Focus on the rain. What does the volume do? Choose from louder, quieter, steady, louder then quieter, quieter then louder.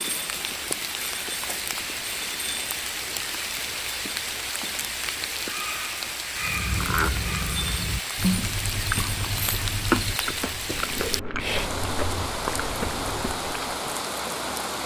steady.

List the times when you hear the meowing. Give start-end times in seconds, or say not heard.
not heard.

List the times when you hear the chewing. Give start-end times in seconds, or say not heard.
6.4-13.8.